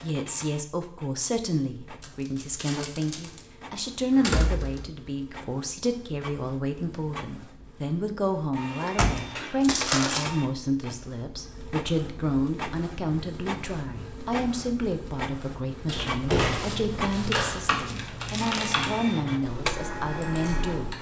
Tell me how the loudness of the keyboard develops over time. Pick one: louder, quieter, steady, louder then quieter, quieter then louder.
louder then quieter.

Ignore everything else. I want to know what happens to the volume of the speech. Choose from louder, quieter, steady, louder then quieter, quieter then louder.
steady.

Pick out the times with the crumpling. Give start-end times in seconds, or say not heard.
2.0-3.5, 9.2-10.2, 16.4-18.8.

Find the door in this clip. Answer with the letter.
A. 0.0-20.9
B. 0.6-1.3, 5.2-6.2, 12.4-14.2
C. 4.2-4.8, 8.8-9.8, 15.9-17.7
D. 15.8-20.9
C.